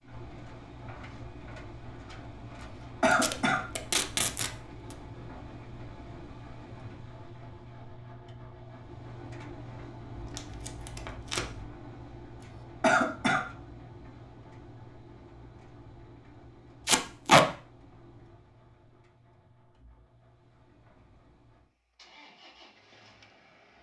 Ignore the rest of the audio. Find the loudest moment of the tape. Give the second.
17 s.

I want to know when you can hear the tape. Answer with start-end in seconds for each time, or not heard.
3.1-5.0, 10.1-11.7, 16.9-17.4.